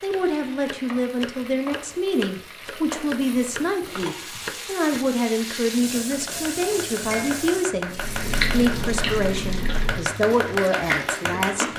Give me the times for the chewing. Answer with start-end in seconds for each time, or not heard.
7.9-11.7.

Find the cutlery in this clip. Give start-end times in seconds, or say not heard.
not heard.